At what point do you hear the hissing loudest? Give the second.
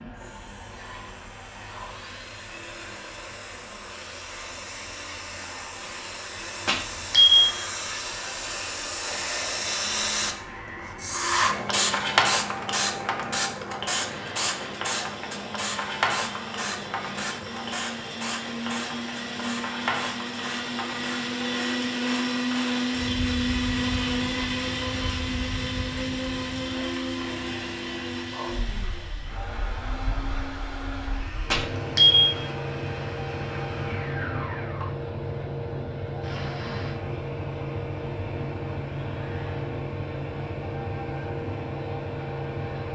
12 s.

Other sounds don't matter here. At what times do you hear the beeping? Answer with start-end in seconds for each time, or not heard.
6.7-7.5, 31.5-32.4.